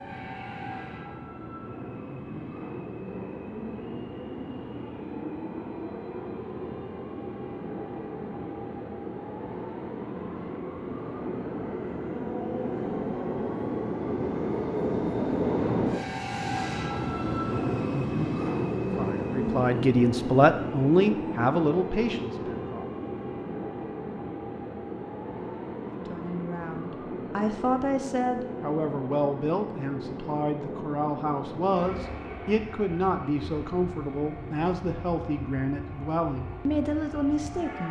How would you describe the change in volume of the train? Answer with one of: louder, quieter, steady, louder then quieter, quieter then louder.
louder then quieter.